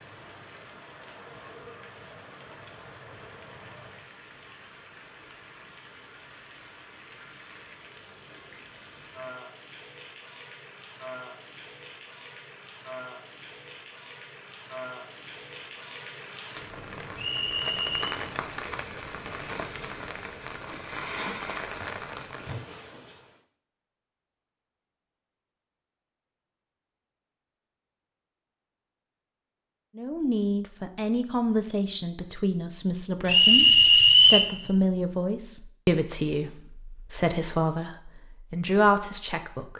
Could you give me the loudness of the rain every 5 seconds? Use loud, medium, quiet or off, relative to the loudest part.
medium, medium, medium, loud, loud, off, off, off.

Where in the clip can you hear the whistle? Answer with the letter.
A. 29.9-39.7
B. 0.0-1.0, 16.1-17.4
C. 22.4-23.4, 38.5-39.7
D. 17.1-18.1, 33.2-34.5
D.